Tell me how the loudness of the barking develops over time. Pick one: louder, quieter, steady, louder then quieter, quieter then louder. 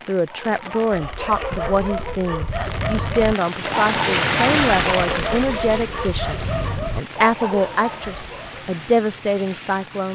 steady.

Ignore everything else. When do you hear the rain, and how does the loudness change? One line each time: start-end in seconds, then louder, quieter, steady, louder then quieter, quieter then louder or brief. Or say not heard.
0.0-10.1 louder then quieter.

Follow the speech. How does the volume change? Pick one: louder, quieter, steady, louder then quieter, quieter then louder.
steady.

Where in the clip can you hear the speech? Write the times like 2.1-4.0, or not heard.
0.1-6.3, 7.0-10.1.